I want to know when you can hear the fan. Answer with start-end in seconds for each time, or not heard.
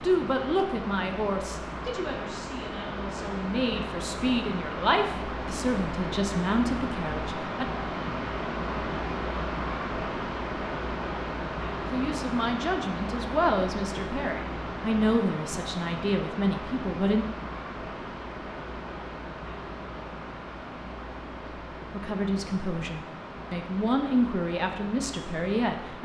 0.0-25.9.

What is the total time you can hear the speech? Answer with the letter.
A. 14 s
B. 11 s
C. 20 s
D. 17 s
D.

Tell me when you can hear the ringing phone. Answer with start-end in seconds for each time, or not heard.
not heard.